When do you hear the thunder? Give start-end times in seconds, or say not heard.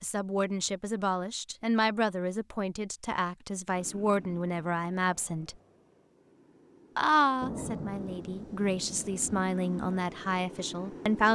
7.4-9.4.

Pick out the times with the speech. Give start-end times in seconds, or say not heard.
0.0-5.5, 7.0-11.2.